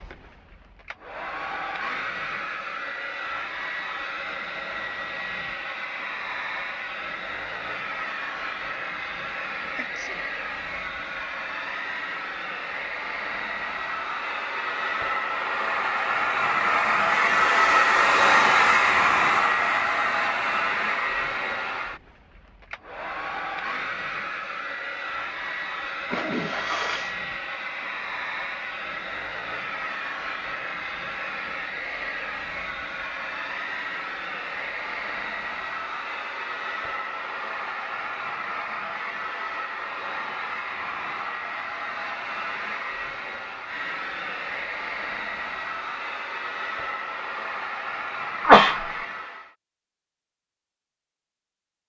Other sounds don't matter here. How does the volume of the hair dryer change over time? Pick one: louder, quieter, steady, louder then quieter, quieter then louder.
louder then quieter.